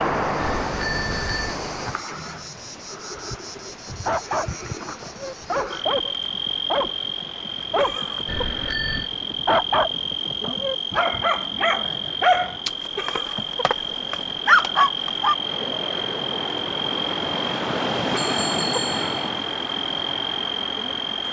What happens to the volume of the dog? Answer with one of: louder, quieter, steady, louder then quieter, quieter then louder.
louder.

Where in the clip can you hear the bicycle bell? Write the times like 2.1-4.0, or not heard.
0.3-1.6, 8.2-9.1, 18.1-19.3.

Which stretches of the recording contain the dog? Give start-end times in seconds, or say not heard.
3.5-15.3.